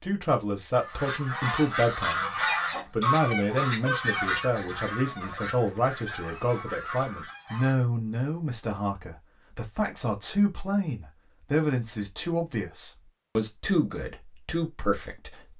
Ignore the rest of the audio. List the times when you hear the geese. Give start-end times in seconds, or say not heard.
0.8-7.8.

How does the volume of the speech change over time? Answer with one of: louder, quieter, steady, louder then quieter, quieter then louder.
steady.